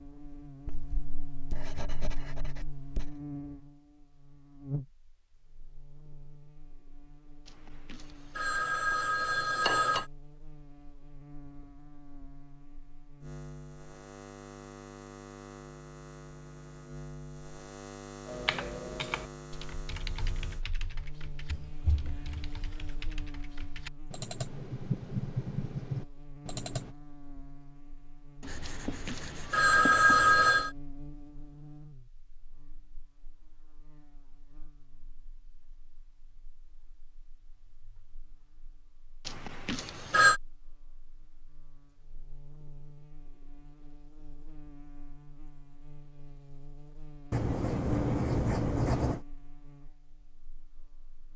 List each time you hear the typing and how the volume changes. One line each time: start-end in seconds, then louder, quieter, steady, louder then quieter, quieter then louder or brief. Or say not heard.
18.2-26.9 quieter then louder.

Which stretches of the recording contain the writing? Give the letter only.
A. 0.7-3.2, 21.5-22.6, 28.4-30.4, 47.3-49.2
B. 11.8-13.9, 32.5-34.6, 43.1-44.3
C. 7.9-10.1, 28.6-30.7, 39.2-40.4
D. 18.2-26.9
A.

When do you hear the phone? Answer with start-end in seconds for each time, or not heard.
7.9-10.1, 28.6-30.7, 39.2-40.4.